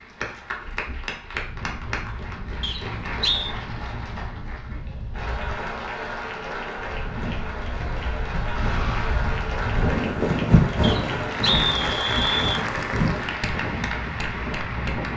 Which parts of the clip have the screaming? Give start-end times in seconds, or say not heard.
8.4-9.1.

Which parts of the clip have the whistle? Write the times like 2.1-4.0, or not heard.
2.6-3.5, 10.8-12.7.